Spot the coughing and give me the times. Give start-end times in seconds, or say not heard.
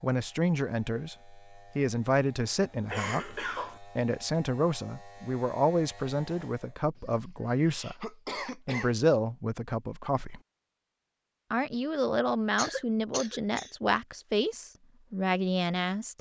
2.9-3.8, 7.0-8.9, 12.6-13.7.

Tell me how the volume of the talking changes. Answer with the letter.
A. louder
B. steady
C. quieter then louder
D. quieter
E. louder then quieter
B.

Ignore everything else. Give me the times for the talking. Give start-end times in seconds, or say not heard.
0.0-10.4, 11.5-16.1.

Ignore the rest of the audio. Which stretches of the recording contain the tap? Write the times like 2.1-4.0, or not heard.
not heard.